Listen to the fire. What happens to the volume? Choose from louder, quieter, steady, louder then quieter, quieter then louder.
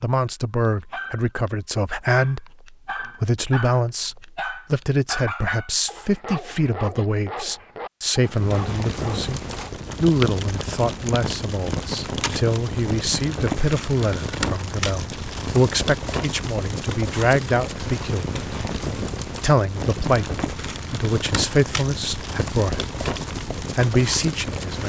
steady.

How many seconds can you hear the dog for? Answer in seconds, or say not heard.
9 s.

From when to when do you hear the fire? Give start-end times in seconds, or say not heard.
8.2-24.8.